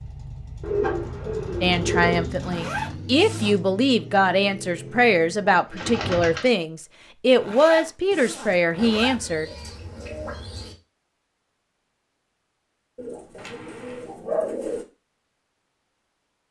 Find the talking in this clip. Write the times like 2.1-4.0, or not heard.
1.6-9.5.